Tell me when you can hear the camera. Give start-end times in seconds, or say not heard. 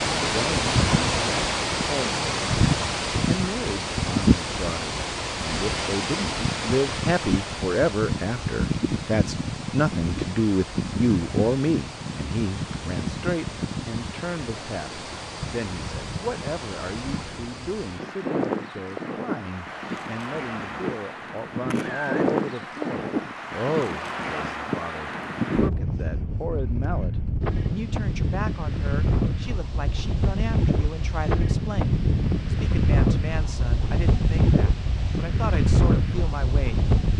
21.7-22.2.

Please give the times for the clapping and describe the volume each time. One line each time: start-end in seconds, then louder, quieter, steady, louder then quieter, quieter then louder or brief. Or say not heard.
not heard.